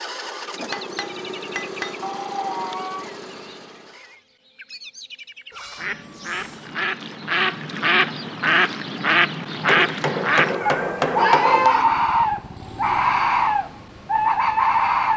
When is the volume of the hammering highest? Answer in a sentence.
The loudest moment of the hammering is at 11 seconds.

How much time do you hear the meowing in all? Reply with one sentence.
The meowing can be heard for 4 seconds in total.